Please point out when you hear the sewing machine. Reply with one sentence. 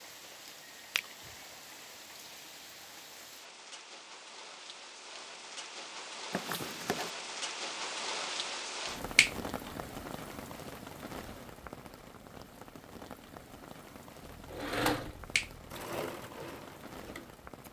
The sewing machine can be heard from 14.2 to 17.4 s.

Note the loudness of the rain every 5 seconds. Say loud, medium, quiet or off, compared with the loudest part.
medium, loud, medium, medium.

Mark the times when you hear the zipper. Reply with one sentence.
The zipper can be heard from 6.3 to 7.1 s.